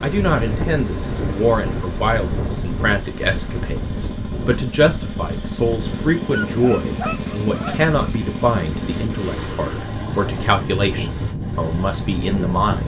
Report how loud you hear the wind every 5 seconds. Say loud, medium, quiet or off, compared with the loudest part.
loud, medium, loud.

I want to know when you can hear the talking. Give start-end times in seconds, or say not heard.
0.0-12.8.